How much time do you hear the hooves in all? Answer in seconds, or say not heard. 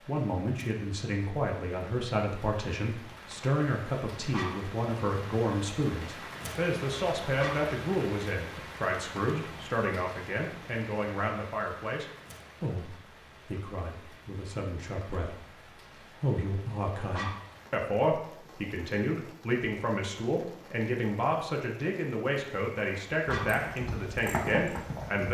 2 s.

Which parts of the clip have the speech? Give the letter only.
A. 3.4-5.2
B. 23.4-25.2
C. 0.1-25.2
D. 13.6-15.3
C.